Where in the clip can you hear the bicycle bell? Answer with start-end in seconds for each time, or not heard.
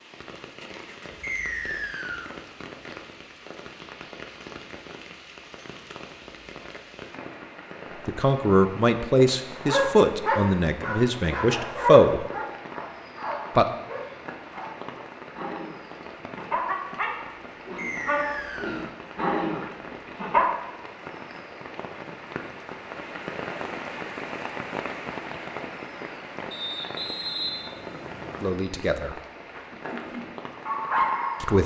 not heard.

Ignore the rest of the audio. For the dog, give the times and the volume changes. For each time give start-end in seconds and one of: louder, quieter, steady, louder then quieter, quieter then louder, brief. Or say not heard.
9.4-20.6 quieter then louder
29.6-31.6 brief.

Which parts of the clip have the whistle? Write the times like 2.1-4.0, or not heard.
1.2-2.4, 17.8-18.9, 26.5-28.5.